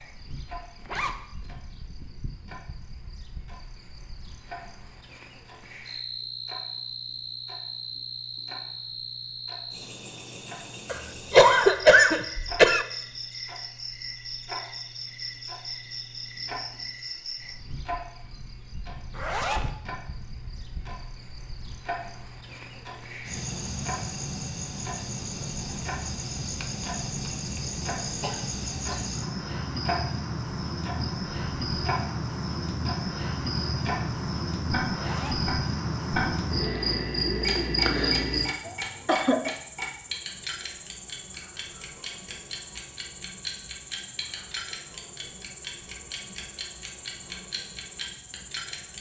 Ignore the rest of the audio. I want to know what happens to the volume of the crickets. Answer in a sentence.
The loudness of the crickets goes up, then down.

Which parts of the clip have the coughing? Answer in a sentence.
You can hear the coughing from 10.9 to 12.8 s, from 28.2 to 29.0 s and from 38.6 to 39.5 s.